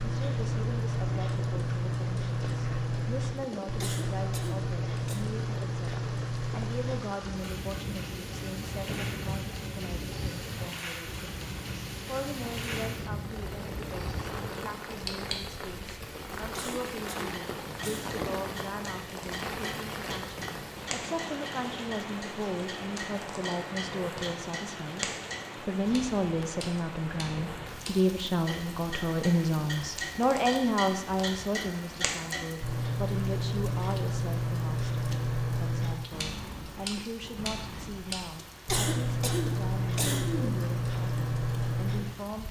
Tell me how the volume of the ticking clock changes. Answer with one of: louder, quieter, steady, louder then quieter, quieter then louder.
quieter then louder.